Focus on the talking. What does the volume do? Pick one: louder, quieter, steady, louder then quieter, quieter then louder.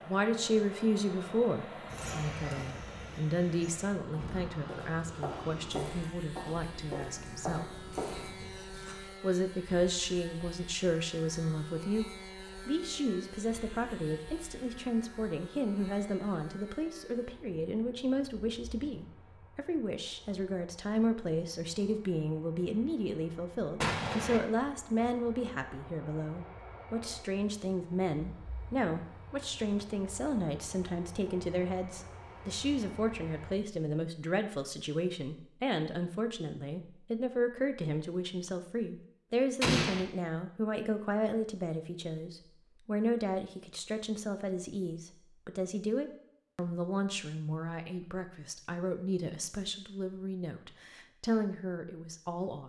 steady.